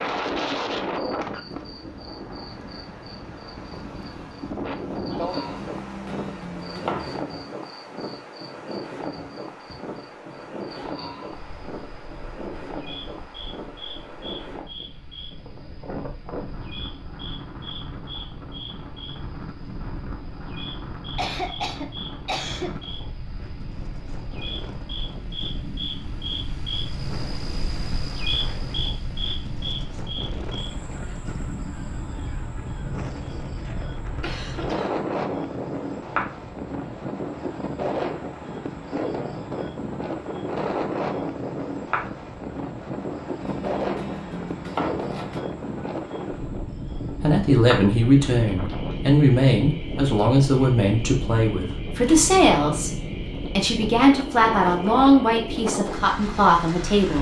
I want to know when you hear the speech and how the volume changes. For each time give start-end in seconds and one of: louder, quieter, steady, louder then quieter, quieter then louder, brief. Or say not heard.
47.1-57.1 steady.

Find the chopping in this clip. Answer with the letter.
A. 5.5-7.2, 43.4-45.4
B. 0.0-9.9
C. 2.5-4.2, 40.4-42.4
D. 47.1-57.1
A.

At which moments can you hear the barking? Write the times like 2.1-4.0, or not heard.
not heard.